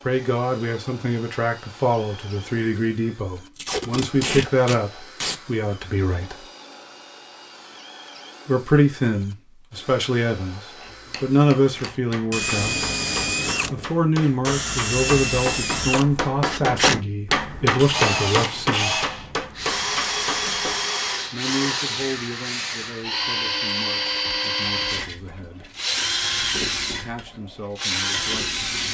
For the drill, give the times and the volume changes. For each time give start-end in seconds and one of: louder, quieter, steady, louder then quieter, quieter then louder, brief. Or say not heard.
0.0-28.9 louder.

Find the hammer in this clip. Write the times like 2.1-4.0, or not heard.
10.8-20.8.